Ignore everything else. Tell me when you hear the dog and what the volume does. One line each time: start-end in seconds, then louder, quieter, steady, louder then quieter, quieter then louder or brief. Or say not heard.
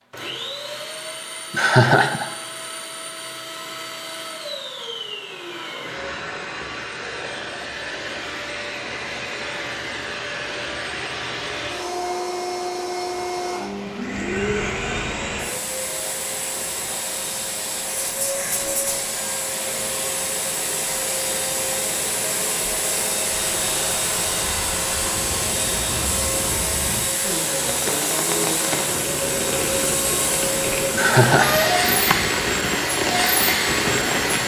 not heard.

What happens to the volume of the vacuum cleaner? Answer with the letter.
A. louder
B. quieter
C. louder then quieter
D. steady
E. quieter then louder
A.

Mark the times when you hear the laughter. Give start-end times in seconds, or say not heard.
1.5-2.3, 30.9-32.1.